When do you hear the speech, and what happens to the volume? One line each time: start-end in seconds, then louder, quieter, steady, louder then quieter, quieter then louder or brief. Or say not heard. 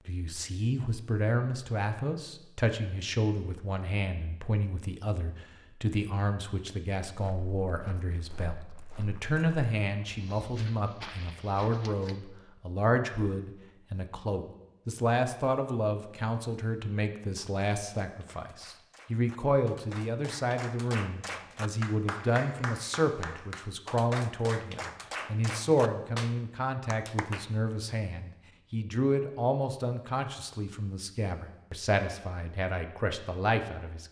0.1-34.0 steady.